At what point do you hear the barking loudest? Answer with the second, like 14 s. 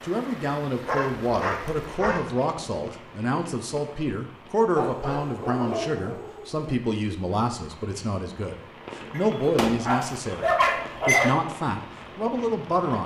11 s.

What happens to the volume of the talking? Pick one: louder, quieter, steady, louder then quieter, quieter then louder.
steady.